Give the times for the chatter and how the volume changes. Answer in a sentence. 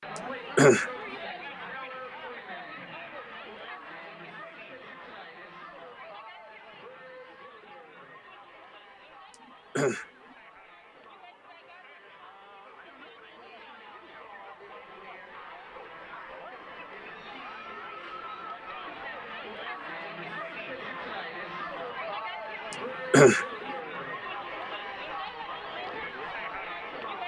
The chatter can be heard from 0.0 to 27.2 s, getting quieter then louder.